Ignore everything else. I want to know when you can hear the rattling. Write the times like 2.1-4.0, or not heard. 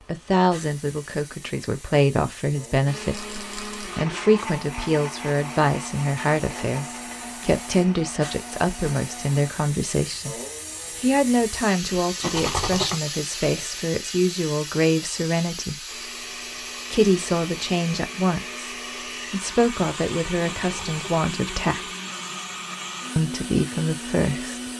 3.1-3.9, 12.2-12.9, 20.6-21.2.